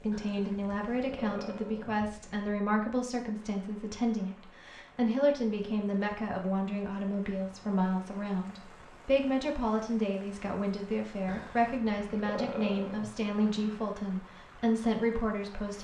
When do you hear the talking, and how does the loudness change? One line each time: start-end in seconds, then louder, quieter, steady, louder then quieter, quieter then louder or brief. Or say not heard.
0.0-15.7 steady.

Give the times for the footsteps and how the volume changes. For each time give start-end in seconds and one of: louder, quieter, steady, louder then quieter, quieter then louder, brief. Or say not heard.
not heard.